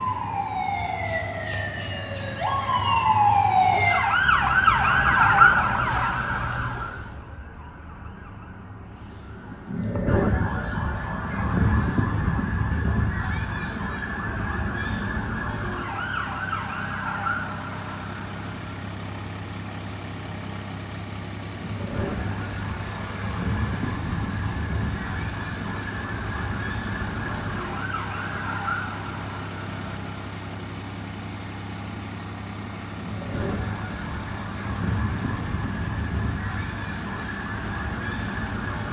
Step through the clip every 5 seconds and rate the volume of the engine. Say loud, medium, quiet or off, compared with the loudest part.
medium, quiet, medium, loud, loud, loud, loud, loud.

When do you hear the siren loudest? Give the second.
5 s.